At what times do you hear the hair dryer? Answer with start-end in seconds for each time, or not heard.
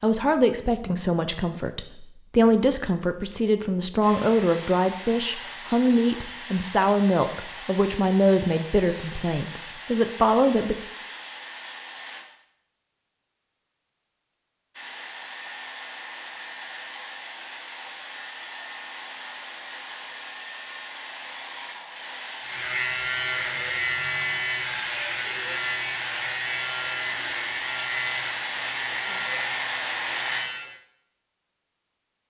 4.0-12.2, 14.7-30.4.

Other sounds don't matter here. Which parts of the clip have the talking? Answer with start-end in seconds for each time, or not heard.
0.0-10.8.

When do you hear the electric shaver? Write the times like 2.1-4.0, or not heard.
22.4-30.8.